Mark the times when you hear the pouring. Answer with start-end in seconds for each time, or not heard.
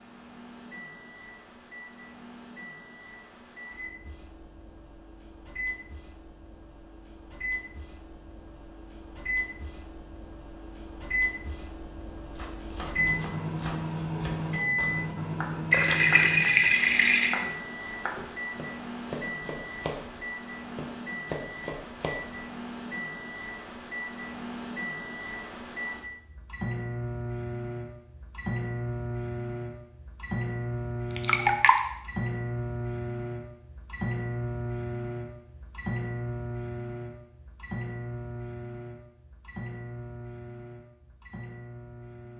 15.7-17.4, 31.1-31.8.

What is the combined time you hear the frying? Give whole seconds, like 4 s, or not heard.
not heard.